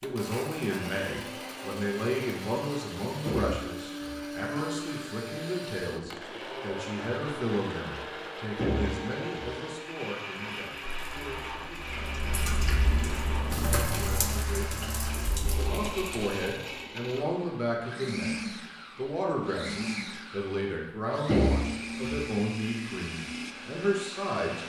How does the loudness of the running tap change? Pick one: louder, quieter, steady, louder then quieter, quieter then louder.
louder then quieter.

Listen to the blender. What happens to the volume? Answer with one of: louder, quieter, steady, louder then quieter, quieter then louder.
steady.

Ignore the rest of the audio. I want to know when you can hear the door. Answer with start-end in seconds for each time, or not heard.
3.2-4.2, 8.6-9.6, 21.2-22.2.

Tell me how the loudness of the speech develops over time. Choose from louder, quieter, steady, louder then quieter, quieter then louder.
quieter then louder.